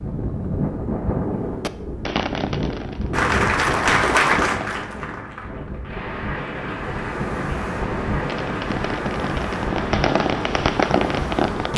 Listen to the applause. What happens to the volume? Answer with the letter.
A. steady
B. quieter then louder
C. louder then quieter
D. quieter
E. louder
D.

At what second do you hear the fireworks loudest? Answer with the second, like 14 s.
11 s.